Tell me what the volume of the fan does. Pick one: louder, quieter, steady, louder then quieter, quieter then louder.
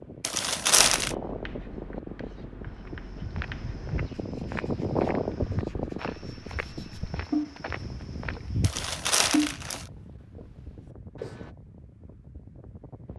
louder then quieter.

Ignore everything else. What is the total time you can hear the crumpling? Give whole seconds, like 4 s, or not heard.
2 s.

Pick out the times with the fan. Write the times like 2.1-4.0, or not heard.
0.0-13.1.